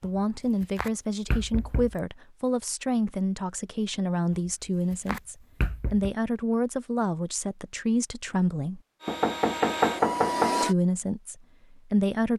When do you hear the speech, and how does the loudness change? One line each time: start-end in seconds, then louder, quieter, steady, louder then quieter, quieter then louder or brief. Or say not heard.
0.0-8.8 steady
10.6-12.3 brief.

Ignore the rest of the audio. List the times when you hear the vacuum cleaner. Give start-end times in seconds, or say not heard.
9.0-10.8.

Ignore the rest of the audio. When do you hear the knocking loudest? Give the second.
10 s.